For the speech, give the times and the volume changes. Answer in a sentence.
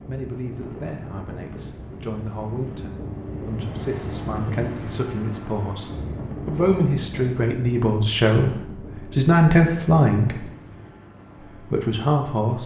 The speech can be heard from 0.1 to 10.5 s, getting louder; and briefly from 11.5 to 12.6 s.